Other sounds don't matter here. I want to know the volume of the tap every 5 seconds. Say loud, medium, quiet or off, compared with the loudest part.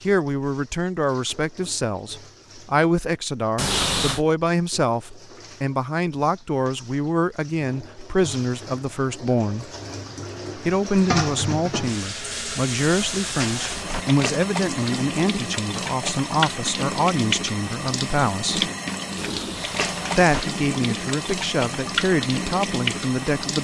quiet, quiet, loud, loud, loud.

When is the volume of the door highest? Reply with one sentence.
The volume of the door peaks at 4 seconds.